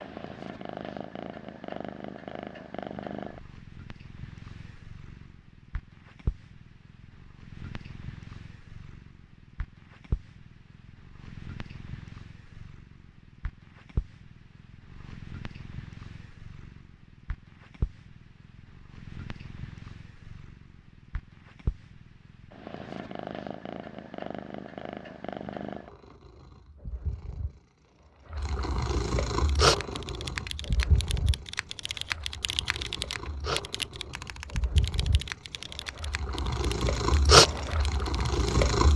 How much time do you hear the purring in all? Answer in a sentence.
You can hear the purring for 39 seconds altogether.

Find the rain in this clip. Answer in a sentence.
The rain can't be heard in this clip.